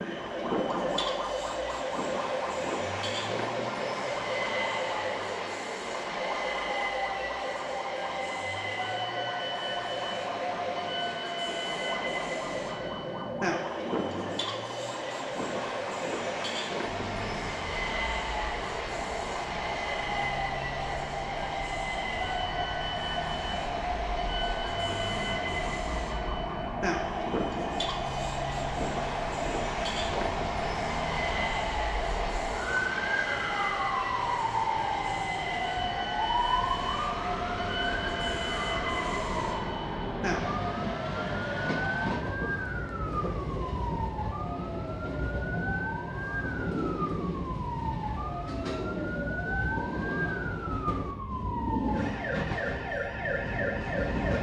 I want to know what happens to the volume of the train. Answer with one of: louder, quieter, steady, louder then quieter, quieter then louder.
steady.